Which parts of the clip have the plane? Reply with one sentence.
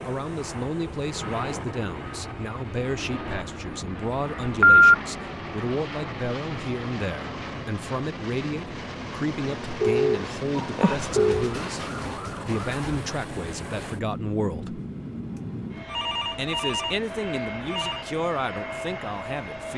The plane can be heard from 0.0 to 19.7 s.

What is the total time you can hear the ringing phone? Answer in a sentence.
The ringing phone can be heard for 4 seconds in total.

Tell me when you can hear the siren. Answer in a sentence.
You can hear the siren from 10.6 to 13.0 s.